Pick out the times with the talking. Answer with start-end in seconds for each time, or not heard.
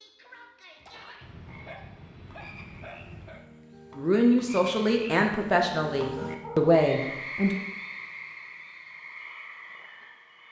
4.0-7.6.